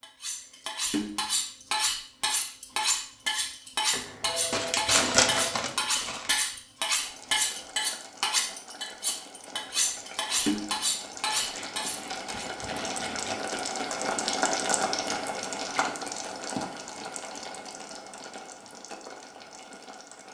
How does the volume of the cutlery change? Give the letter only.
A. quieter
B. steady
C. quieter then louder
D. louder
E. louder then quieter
B.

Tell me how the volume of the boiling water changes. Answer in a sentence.
The volume of the boiling water goes up, then down.